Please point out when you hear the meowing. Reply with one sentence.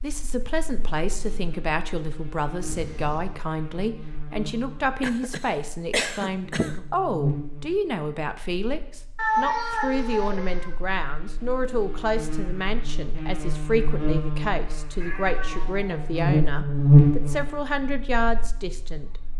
You can hear the meowing from 2.6 to 3.3 s, from 9.2 to 10.7 s and from 15.0 to 16.1 s.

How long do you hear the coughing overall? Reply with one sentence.
The coughing can be heard for 2 seconds in total.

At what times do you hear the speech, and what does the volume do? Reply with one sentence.
You can hear the speech from 0.0 to 19.2 s, at a steady volume.